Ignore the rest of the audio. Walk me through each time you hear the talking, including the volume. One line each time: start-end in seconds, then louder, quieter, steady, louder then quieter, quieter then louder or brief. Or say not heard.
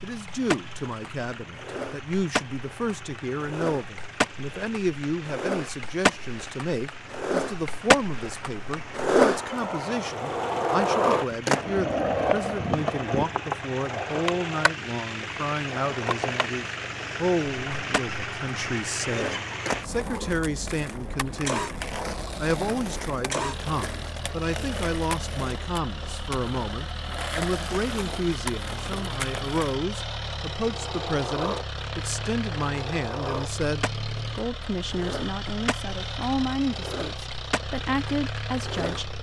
0.0-39.1 steady.